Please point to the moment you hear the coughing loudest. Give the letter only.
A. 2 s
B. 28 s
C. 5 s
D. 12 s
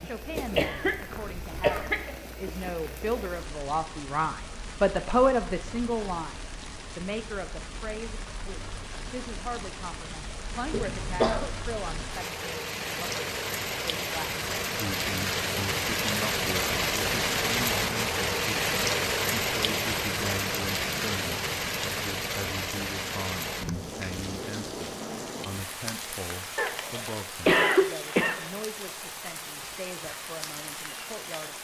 B.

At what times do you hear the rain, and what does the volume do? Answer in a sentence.
You can hear the rain from 0.0 to 31.6 s, getting louder then quieter.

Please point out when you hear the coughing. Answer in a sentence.
The coughing can be heard from 0.6 to 2.1 s, from 10.7 to 11.5 s and from 26.6 to 28.5 s.